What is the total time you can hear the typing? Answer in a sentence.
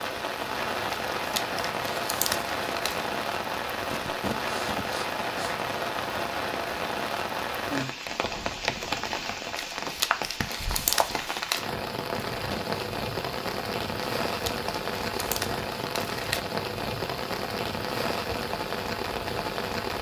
You can't hear the typing here.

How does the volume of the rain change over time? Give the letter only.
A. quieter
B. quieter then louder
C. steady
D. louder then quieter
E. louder
C.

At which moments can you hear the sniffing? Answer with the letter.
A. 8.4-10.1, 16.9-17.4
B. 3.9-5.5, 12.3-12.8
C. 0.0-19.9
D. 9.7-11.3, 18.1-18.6
B.